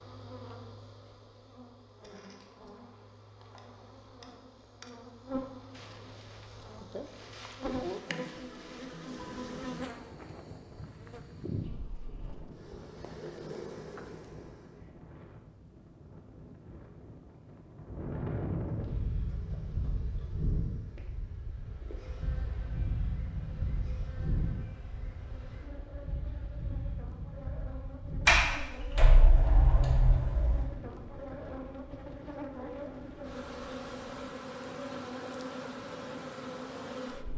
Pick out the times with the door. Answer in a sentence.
You can hear the door from 28.2 to 30.6 s.